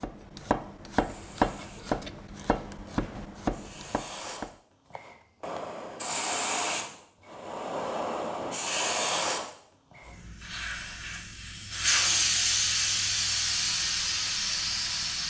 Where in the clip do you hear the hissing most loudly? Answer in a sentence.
The volume of the hissing peaks at 12 seconds.